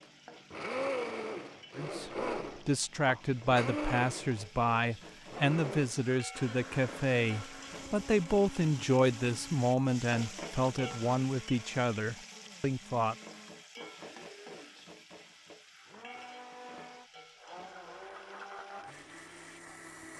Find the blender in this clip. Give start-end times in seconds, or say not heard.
0.0-20.1.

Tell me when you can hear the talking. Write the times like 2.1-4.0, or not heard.
1.8-13.2.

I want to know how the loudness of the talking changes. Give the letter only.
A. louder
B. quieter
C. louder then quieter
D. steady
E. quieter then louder
D.